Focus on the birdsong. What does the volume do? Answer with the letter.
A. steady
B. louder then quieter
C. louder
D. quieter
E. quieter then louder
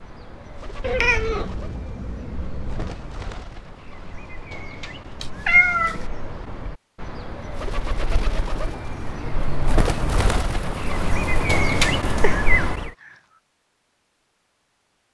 C.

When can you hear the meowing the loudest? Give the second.
6 s.